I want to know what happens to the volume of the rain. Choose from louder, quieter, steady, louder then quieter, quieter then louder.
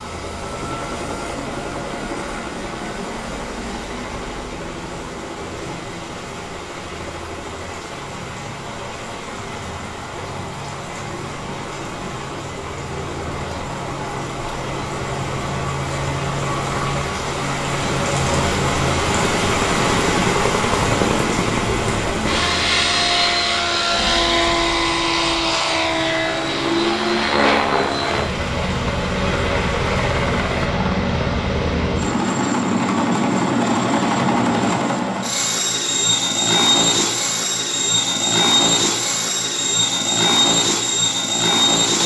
louder then quieter.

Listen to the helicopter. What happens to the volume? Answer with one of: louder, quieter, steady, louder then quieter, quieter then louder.
louder.